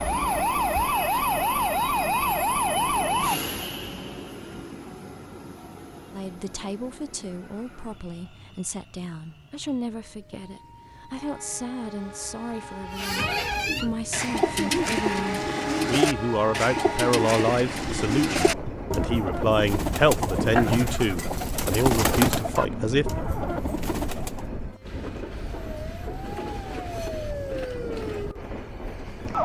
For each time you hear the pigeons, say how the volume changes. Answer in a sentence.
The pigeons can be heard from 12.8 to 24.4 s, at a steady volume.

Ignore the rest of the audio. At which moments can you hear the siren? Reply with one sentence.
You can hear the siren from 0.0 to 3.4 s and from 25.5 to 29.3 s.